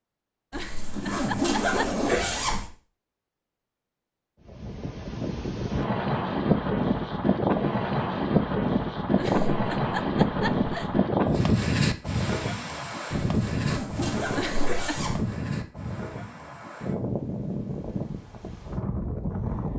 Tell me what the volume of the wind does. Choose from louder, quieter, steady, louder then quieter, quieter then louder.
quieter.